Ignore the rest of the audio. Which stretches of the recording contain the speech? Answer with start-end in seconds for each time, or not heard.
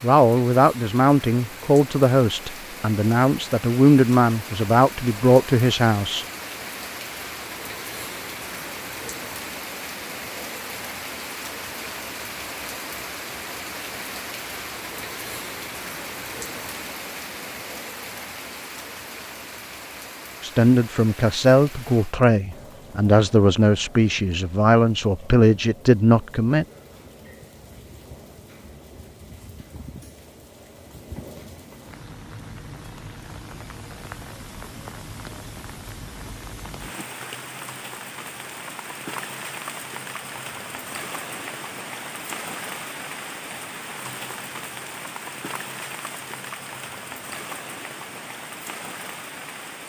0.0-6.2, 20.4-26.6.